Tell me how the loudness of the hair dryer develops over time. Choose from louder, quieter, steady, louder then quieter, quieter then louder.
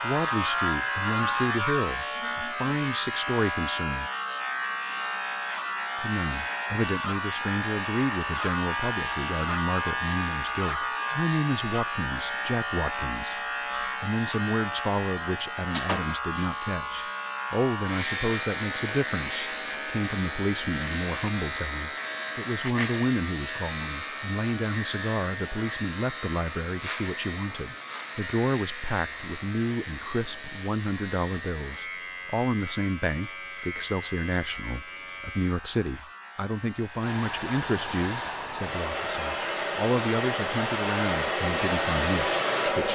louder.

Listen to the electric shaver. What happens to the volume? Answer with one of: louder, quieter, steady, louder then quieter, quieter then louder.
quieter.